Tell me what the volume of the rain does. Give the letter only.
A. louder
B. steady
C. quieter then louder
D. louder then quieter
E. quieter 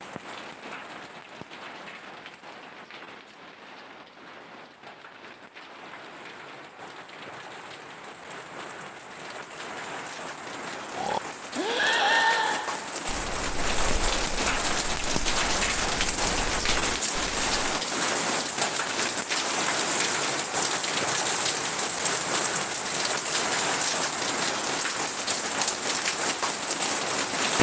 A.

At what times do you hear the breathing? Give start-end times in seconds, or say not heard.
10.9-17.6.